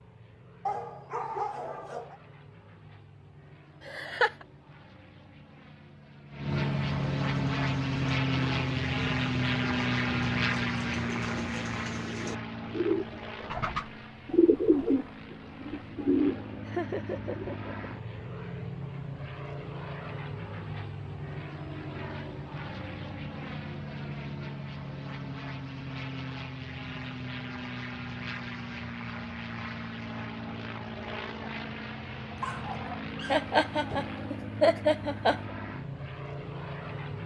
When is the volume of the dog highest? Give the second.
1 s.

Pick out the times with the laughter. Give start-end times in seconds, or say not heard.
3.8-4.5, 16.6-17.8, 33.3-35.4.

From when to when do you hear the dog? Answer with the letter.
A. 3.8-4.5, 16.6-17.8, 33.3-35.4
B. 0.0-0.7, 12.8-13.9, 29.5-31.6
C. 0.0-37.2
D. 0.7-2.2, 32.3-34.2
D.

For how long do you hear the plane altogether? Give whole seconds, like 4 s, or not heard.
37 s.